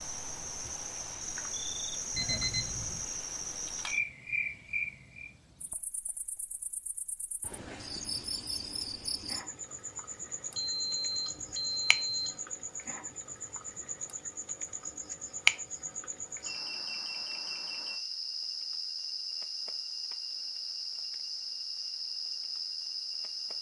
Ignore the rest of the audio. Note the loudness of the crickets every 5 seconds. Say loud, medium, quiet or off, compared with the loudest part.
loud, medium, medium, loud, loud.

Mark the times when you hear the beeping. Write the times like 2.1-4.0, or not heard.
2.1-3.0, 10.6-12.3, 16.4-17.9.